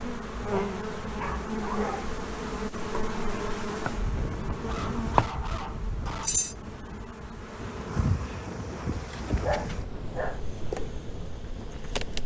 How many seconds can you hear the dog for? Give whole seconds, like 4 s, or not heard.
5 s.